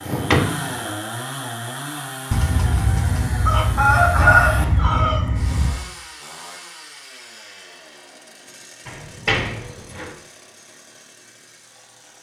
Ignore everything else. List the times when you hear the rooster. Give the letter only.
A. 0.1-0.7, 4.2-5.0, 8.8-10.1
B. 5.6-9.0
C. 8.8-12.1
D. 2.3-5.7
D.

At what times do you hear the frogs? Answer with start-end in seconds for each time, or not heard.
not heard.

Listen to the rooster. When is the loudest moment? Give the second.
4 s.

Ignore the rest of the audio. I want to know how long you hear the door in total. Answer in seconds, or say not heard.
3 s.